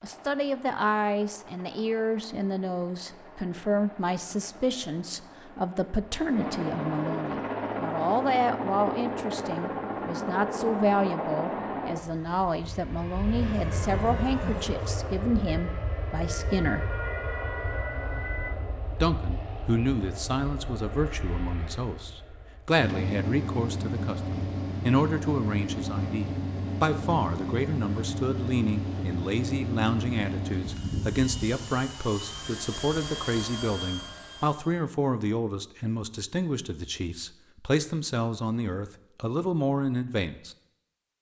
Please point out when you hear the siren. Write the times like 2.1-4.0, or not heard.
13.2-18.6.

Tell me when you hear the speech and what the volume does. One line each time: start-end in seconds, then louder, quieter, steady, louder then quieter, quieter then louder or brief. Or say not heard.
0.0-16.9 steady
19.0-40.5 steady.